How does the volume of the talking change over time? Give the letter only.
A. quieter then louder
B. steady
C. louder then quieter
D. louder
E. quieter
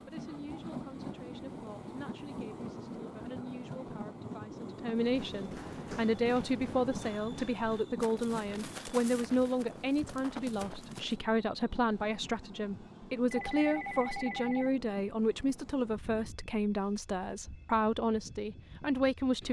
D.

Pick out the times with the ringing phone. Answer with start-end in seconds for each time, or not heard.
13.3-14.7.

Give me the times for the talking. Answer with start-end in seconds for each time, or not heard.
0.1-19.4.